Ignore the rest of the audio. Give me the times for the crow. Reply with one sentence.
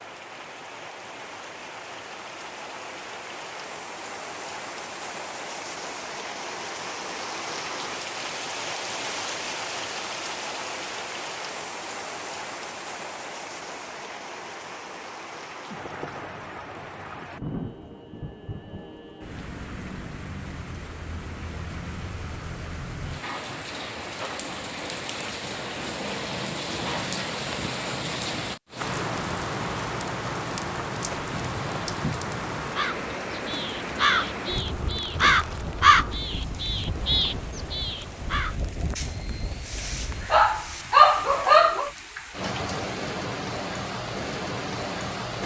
The crow can be heard from 31.3 to 40.9 s.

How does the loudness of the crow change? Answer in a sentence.
The volume of the crow goes up, then down.